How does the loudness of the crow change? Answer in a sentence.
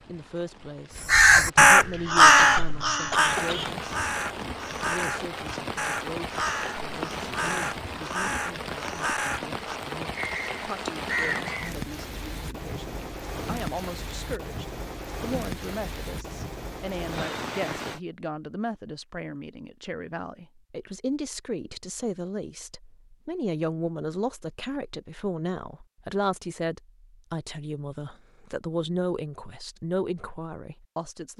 The loudness of the crow goes down.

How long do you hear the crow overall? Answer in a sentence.
The crow can be heard for 11 seconds in total.